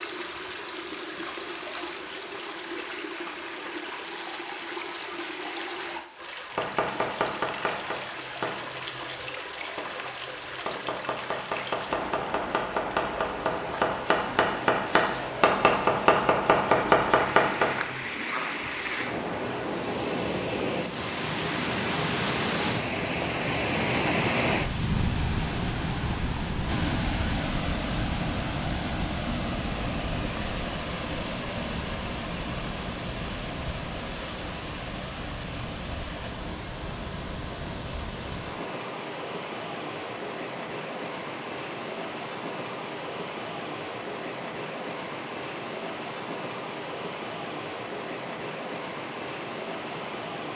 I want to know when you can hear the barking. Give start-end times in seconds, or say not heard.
not heard.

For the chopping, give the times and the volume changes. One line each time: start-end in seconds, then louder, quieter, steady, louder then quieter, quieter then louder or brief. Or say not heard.
6.5-17.8 quieter then louder.